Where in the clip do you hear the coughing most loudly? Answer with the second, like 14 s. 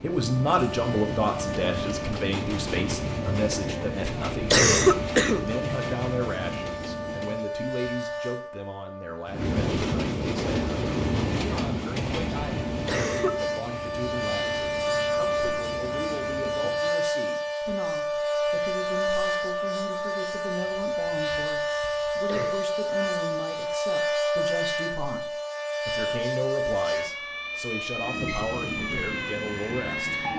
5 s.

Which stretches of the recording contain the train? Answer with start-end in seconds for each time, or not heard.
0.0-7.5, 9.2-16.9, 27.9-30.3.